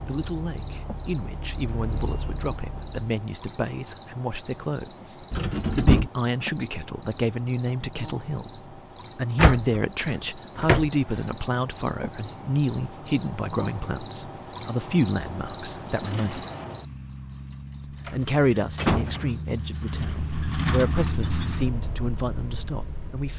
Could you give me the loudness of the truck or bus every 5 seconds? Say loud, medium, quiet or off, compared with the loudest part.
medium, off, off, medium, loud.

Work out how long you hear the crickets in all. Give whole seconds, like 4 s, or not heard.
23 s.